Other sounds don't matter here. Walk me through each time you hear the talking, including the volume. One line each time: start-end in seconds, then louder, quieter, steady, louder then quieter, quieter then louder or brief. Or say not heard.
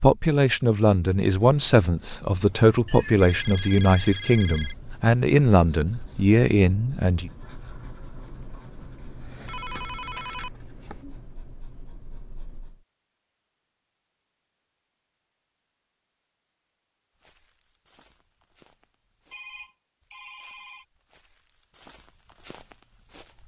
0.0-7.3 steady.